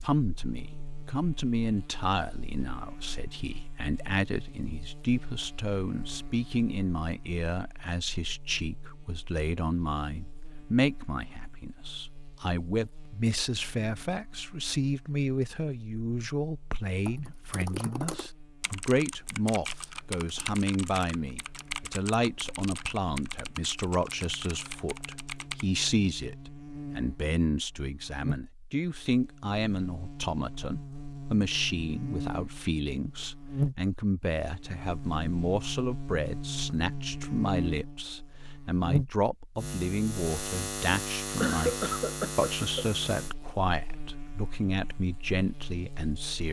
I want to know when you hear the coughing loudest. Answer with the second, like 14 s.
42 s.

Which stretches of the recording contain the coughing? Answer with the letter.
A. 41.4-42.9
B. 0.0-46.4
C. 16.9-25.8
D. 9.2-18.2
A.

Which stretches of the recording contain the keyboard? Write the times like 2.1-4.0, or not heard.
16.9-25.8.